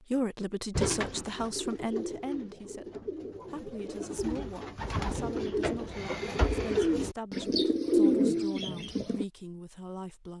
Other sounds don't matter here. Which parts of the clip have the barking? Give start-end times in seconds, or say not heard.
not heard.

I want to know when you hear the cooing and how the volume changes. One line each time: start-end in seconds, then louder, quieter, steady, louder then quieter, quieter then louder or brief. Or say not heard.
0.7-9.2 louder.